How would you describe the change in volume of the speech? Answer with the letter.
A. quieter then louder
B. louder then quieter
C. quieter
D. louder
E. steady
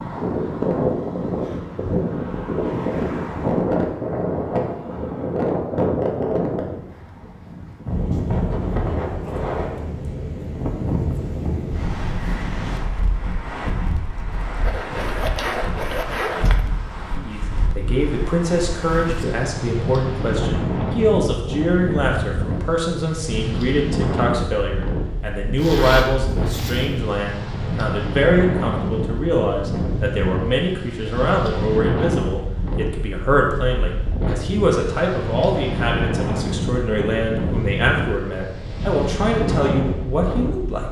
E.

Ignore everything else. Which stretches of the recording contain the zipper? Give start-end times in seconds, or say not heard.
14.7-16.6, 25.6-27.0.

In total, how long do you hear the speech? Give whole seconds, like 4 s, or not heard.
24 s.